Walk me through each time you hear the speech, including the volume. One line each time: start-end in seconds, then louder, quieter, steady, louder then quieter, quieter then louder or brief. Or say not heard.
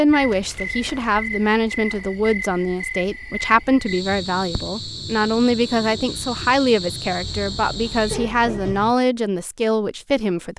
0.0-10.5 steady.